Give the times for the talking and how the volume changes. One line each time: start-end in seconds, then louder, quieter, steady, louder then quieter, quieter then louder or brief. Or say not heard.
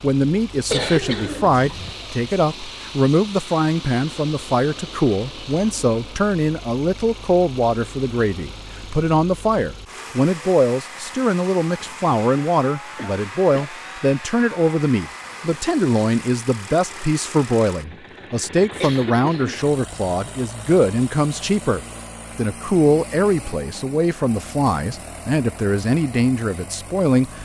0.0-27.3 steady.